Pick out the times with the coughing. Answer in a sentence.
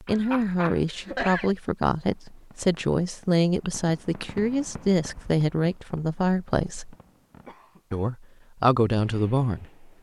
The coughing can be heard from 0.1 to 1.6 s and from 7.5 to 8.1 s.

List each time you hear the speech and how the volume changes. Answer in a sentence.
You can hear the speech from 0.0 to 7.0 s, at a steady volume; and briefly from 7.9 to 9.8 s.